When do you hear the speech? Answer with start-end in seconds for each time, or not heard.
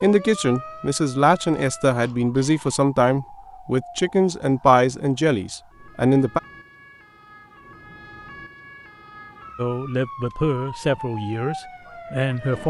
0.0-6.4, 9.6-12.6.